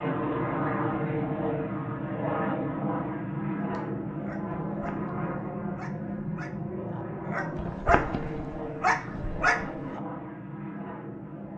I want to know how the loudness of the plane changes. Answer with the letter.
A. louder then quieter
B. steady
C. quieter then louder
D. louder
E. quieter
E.